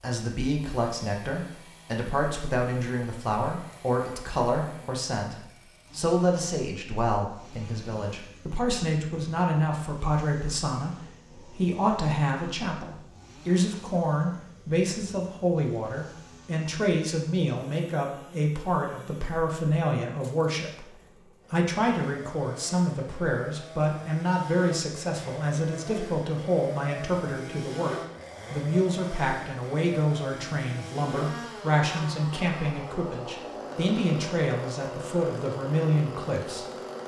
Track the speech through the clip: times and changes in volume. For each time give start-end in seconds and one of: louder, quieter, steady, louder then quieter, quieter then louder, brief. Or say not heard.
0.0-36.6 steady.